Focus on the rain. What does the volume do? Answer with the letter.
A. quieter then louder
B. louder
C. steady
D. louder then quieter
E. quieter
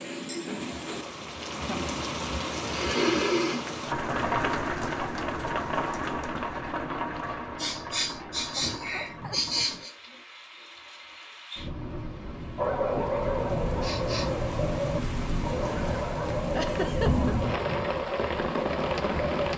A.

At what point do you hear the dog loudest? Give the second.
13 s.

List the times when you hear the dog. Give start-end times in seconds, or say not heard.
12.6-19.5.